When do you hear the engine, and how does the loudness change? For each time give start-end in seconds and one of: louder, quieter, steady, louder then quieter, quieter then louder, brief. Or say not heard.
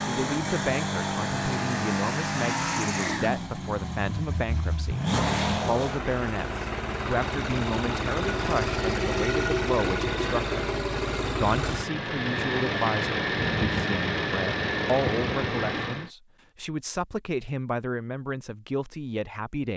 0.0-16.1 steady.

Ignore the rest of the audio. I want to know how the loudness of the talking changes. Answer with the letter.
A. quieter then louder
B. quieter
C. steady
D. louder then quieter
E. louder
C.